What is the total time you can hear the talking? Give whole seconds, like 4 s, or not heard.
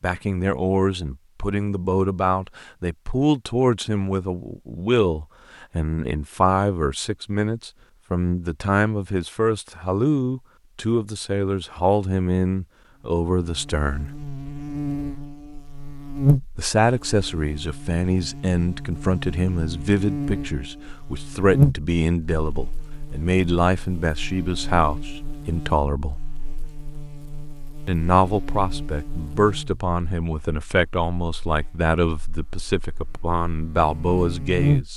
31 s.